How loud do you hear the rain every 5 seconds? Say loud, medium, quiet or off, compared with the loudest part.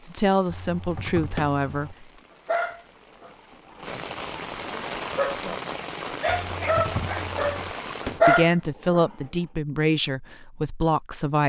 medium, loud, off.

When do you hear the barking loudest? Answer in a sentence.
The loudest moment of the barking is at 8 seconds.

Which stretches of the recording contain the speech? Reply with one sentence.
You can hear the speech from 0.1 to 2.0 s and from 8.2 to 11.4 s.